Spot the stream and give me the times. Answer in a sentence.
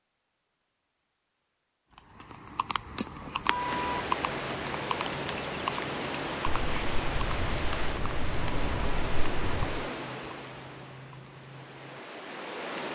You can hear the stream from 3.5 to 12.9 s.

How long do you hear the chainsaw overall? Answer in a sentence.
You can't hear the chainsaw here.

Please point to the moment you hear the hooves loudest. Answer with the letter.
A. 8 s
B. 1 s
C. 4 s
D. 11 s
C.